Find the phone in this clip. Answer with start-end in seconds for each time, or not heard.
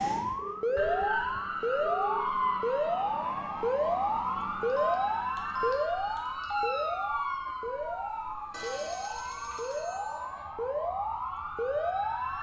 0.3-2.5, 4.8-6.7, 8.5-10.4.